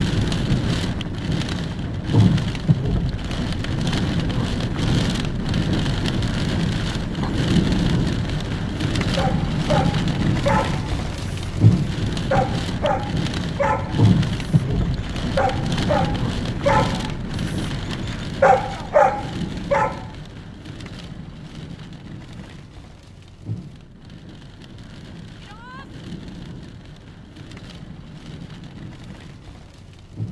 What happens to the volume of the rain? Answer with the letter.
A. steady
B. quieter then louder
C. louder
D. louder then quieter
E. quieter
E.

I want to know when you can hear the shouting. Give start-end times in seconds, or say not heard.
25.4-25.9.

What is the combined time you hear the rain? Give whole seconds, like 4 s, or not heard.
30 s.